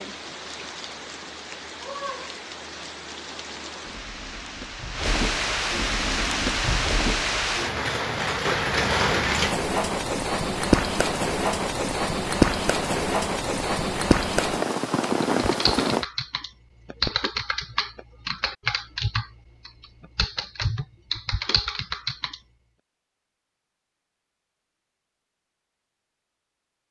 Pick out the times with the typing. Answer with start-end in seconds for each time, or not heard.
15.3-22.4.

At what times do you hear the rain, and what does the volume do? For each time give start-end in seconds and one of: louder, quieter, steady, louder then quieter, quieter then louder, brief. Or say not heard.
0.0-16.1 louder.